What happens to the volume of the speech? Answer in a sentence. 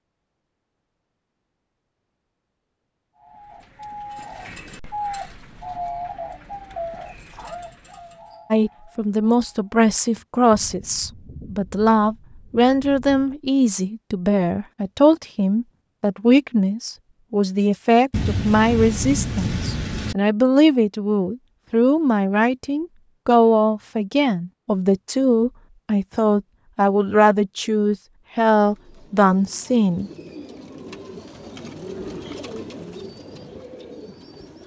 The volume of the speech stays about the same.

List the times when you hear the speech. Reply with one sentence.
You can hear the speech from 8.5 to 30.1 s.